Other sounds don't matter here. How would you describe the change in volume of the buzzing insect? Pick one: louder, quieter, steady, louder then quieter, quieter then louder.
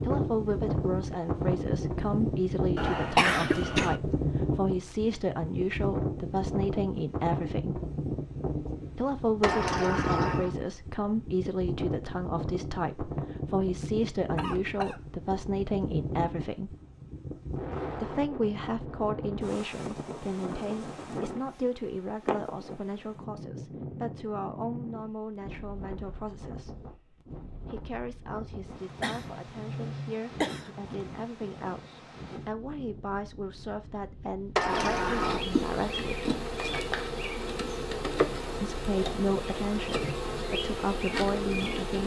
steady.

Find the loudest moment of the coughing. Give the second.
3 s.